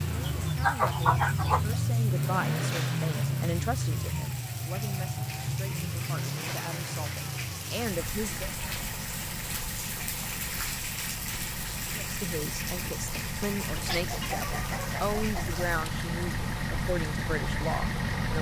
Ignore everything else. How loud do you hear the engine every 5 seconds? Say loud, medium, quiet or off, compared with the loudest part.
loud, medium, medium, loud.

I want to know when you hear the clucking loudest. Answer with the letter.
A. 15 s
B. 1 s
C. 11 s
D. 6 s
B.